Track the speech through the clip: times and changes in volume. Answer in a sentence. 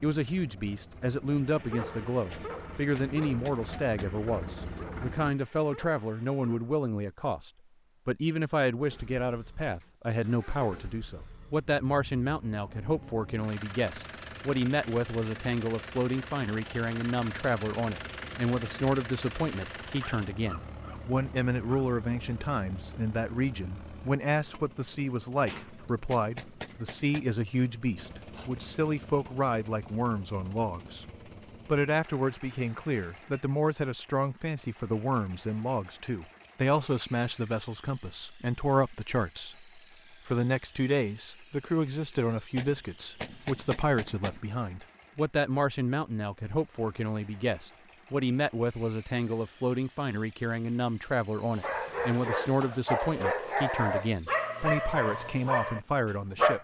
The speech can be heard from 0.0 to 31.1 s, at a steady volume; and from 31.6 to 56.5 s, at a steady volume.